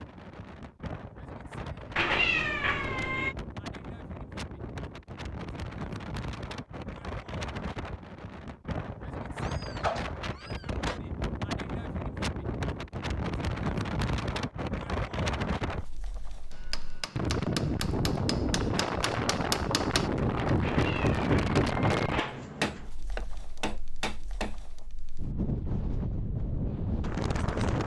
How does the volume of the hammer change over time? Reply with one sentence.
The loudness of the hammer goes up, then down.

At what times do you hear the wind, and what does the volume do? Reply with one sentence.
The wind can be heard from 0.0 to 27.8 s, getting louder then quieter.